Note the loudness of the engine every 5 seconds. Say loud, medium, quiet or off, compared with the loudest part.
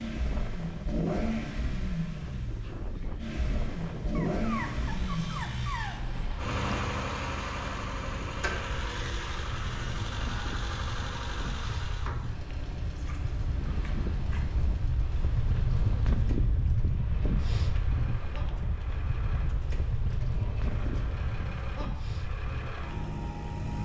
loud, loud, medium, quiet, medium.